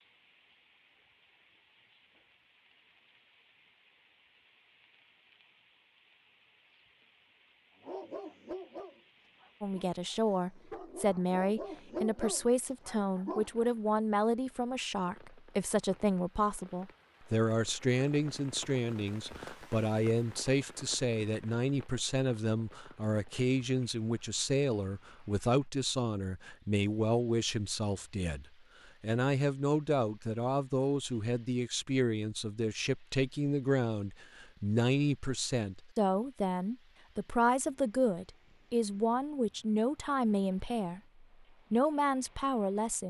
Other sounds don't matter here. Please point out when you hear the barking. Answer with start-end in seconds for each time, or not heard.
7.8-13.7.